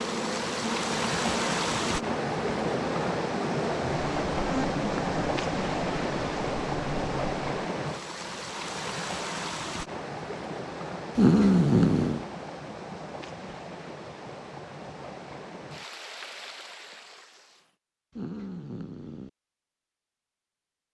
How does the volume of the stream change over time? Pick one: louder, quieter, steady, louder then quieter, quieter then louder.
quieter.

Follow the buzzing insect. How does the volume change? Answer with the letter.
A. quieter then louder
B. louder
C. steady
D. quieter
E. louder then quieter
C.